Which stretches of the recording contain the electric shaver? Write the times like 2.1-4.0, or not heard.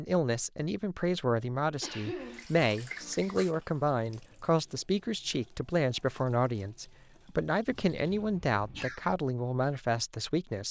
not heard.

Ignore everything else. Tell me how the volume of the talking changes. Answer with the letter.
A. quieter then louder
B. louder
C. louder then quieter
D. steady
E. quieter
D.